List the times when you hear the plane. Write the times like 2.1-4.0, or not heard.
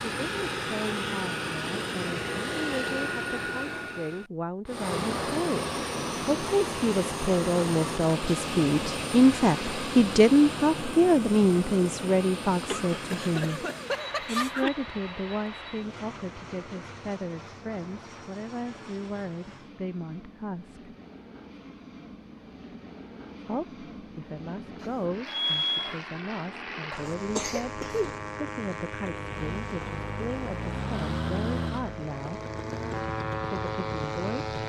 0.0-34.6.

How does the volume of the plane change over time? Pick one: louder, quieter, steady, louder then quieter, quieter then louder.
quieter then louder.